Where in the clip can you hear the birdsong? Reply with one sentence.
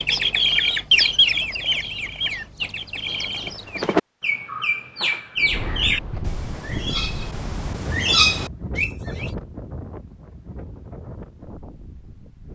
The birdsong can be heard from 0.0 to 9.3 s.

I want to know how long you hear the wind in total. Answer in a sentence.
The wind can be heard for 7 seconds in total.